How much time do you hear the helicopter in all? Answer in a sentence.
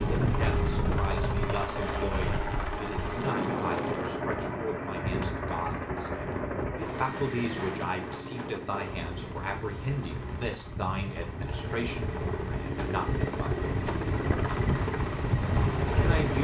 You can hear the helicopter for 16 seconds altogether.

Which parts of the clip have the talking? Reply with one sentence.
The talking can be heard from 0.1 to 13.7 s and from 15.8 to 16.3 s.